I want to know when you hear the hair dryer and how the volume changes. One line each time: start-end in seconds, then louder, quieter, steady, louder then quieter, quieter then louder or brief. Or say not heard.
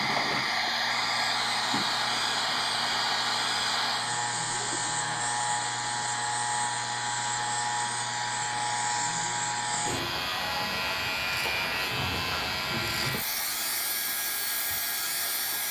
0.0-15.6 quieter.